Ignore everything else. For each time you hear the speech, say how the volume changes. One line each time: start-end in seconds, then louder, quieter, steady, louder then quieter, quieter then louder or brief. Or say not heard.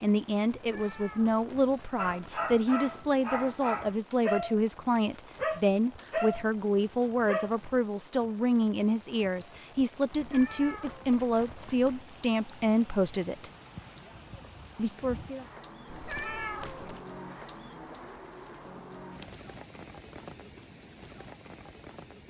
0.0-13.5 steady
14.8-15.4 brief.